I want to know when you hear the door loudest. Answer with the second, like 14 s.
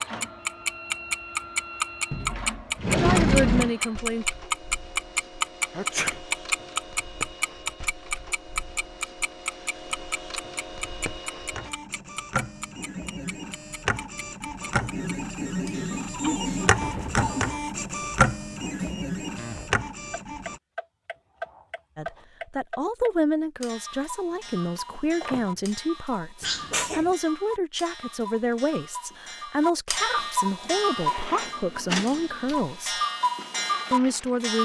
3 s.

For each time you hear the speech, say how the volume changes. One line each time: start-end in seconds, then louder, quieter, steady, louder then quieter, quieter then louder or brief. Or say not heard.
2.2-4.2 brief
21.9-33.0 steady
33.9-34.5 brief.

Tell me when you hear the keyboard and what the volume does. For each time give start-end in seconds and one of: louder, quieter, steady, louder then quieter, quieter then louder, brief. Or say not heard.
not heard.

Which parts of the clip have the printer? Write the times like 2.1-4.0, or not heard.
0.0-20.6, 30.6-34.5.